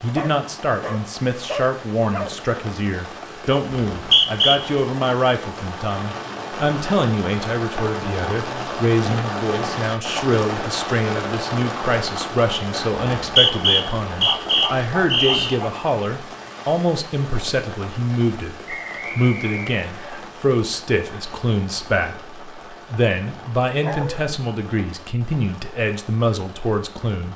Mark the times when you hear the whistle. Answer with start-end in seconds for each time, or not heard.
3.9-4.6, 13.2-15.6, 18.6-20.2.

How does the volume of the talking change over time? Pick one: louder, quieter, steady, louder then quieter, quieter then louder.
steady.